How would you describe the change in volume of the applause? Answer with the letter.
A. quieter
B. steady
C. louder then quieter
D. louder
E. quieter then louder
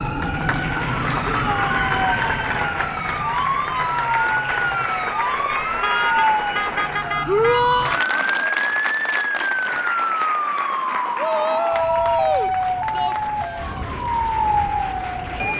A.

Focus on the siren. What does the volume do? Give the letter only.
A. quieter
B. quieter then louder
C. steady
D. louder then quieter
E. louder
C.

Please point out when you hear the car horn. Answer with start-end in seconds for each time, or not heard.
5.6-7.8.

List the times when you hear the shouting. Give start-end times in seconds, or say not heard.
1.2-2.0, 7.2-8.0, 11.2-13.2.